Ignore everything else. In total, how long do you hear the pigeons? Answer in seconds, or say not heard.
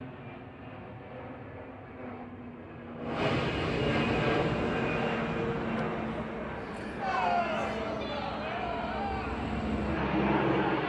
not heard.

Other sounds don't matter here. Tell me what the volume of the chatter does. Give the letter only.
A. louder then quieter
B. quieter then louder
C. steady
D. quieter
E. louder
A.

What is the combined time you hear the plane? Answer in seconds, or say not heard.
11 s.